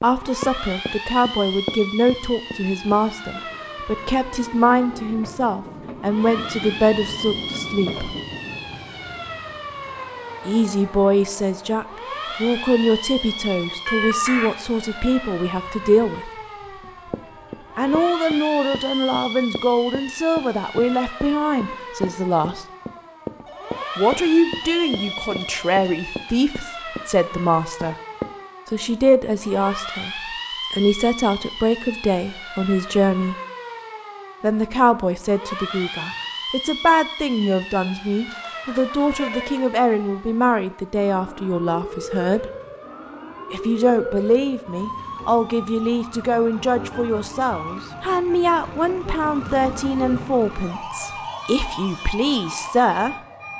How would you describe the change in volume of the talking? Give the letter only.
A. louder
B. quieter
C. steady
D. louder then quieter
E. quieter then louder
C.